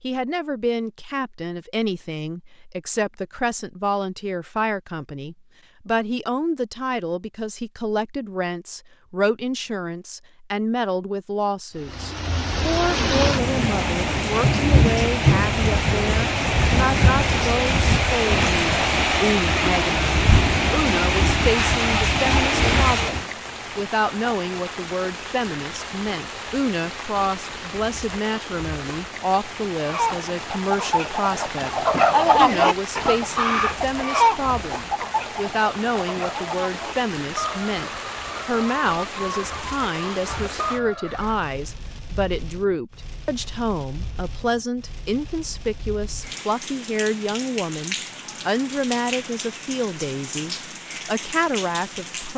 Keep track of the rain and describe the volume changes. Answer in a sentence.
The volume of the rain goes down.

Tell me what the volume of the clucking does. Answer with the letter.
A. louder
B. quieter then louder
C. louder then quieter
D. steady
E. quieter
E.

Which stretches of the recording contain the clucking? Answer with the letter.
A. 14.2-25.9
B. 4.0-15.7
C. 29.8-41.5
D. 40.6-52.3
C.